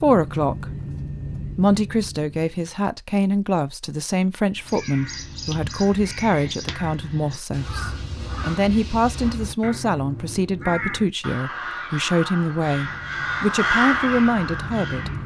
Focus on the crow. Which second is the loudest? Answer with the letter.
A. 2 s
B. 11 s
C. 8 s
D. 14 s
D.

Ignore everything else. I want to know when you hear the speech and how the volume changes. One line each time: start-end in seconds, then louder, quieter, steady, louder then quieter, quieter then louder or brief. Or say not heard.
0.0-15.1 steady.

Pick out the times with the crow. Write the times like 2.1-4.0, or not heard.
4.5-15.2.